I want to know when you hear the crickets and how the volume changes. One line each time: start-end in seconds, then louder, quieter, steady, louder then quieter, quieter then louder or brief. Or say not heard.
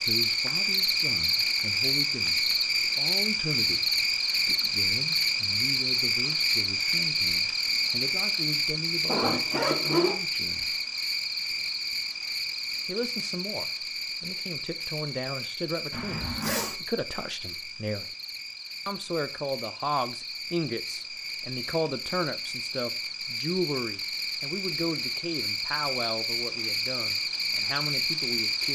0.0-28.7 quieter then louder.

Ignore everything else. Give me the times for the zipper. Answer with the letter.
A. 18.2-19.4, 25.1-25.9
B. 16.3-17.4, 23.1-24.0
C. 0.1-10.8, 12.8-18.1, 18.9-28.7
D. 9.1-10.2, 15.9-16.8
D.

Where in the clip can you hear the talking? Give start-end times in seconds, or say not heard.
0.1-10.8, 12.8-18.1, 18.9-28.7.